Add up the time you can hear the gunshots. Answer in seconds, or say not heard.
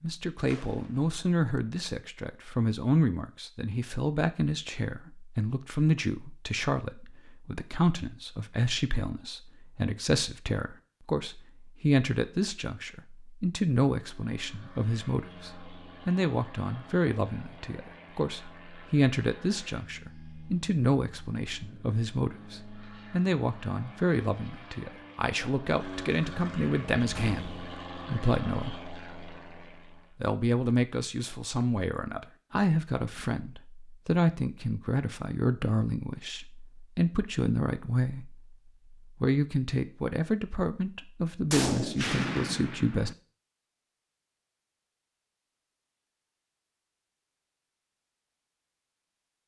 3 s.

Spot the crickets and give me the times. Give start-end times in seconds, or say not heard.
not heard.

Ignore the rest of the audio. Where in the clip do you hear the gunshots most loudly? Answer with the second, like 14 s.
42 s.